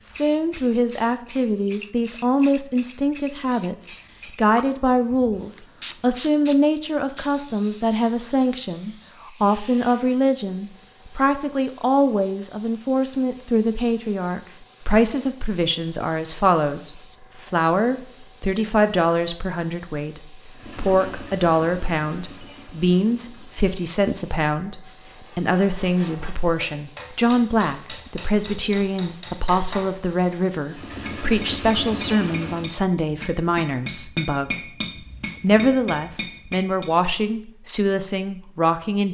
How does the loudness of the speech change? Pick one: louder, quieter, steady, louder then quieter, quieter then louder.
steady.